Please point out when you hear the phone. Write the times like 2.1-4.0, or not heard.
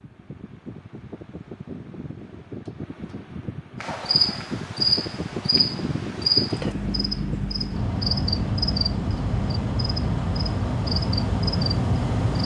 not heard.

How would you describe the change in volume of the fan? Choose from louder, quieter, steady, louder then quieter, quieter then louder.
louder.